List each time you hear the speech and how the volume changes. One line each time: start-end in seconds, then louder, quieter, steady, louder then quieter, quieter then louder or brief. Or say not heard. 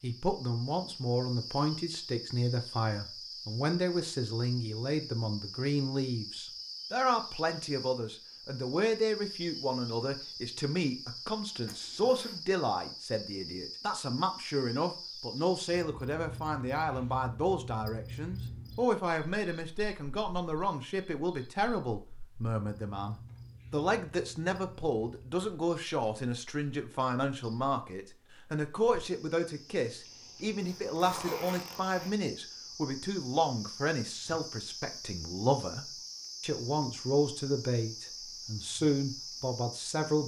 0.0-40.2 steady.